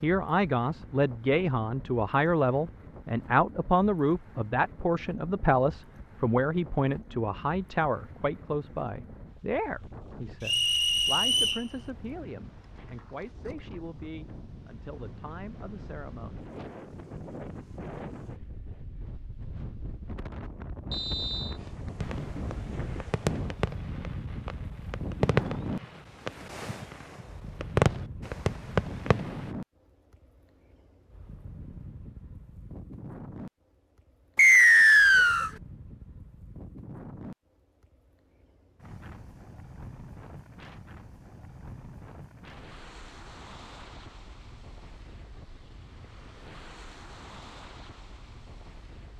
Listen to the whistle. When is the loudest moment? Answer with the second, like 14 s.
35 s.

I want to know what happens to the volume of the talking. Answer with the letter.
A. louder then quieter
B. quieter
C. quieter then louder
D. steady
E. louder
B.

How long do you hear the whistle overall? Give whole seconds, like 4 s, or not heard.
3 s.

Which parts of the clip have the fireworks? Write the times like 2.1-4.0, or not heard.
22.0-29.5.